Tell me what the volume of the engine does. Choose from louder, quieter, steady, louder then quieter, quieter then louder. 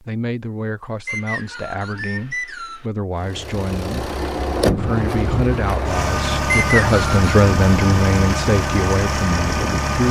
steady.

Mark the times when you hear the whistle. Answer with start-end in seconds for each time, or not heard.
1.1-2.9, 6.5-7.2.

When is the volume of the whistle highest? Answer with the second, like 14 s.
7 s.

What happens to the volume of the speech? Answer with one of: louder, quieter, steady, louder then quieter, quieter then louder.
louder.